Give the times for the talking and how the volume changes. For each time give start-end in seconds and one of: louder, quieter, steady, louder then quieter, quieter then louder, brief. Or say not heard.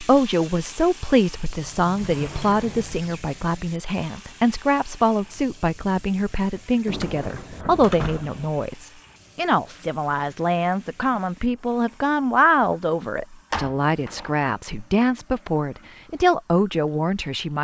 0.0-17.5 steady.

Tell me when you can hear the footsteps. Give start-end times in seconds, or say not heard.
not heard.